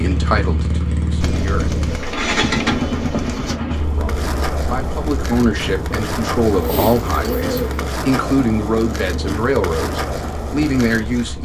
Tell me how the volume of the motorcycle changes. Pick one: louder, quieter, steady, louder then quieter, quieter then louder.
quieter.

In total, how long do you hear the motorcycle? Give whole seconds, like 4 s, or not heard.
11 s.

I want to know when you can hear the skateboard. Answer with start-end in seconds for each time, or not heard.
3.8-11.3.